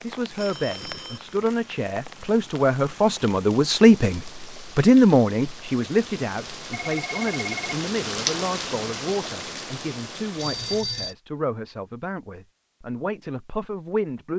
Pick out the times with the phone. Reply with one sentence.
The phone can be heard from 0.3 to 1.4 s, from 6.7 to 7.7 s and from 10.3 to 11.2 s.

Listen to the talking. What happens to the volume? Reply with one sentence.
The loudness of the talking goes up, then down.